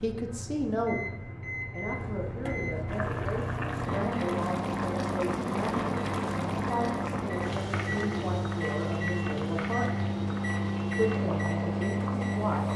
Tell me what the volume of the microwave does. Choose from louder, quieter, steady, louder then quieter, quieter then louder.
louder.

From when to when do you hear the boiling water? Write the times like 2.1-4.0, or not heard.
2.9-12.7.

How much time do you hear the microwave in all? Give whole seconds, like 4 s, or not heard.
13 s.